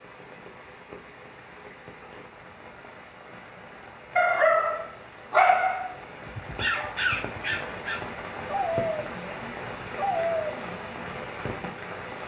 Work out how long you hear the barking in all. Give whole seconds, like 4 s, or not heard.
7 s.